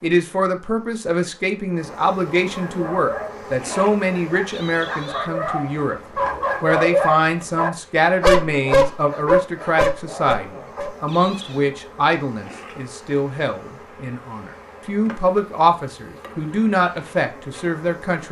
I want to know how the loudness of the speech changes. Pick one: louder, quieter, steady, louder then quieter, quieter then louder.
steady.